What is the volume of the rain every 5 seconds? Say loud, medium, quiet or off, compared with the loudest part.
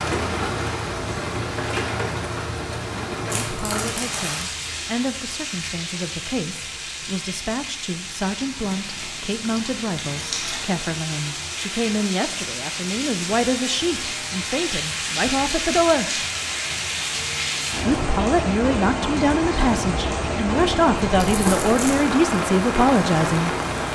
loud, medium, medium, loud, loud.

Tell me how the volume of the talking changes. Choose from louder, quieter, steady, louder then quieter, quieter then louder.
louder.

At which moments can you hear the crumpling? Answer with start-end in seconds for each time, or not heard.
3.2-4.5, 8.5-10.7, 21.1-22.0.